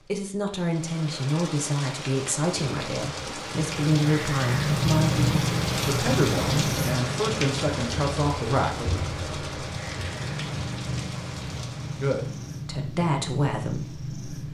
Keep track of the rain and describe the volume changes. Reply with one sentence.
The loudness of the rain goes up, then down.